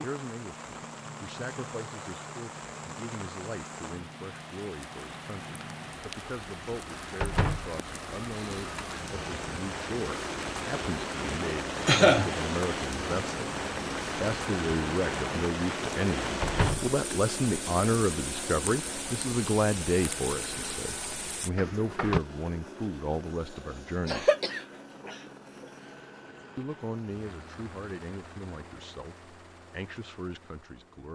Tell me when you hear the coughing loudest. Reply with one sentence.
The loudest moment of the coughing is at 12 seconds.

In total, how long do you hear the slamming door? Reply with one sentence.
You can hear the slamming door for 2 seconds altogether.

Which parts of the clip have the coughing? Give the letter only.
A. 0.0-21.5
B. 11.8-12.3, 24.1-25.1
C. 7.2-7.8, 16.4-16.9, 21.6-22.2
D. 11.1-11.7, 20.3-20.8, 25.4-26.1
B.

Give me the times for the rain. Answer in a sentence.
You can hear the rain from 0.0 to 21.5 s.